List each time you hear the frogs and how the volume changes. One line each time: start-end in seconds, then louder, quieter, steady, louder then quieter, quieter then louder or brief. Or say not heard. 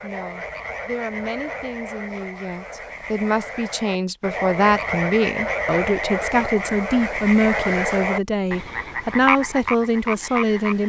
0.0-10.8 louder.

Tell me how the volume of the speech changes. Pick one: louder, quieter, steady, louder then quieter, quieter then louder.
louder.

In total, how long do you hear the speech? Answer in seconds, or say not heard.
11 s.